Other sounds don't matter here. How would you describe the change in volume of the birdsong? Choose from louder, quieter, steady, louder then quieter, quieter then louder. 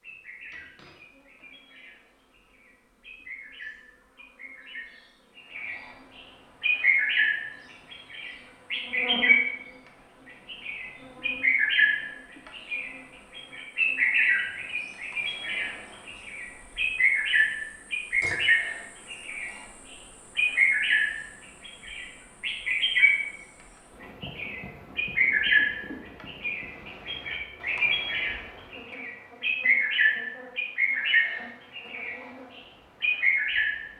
louder.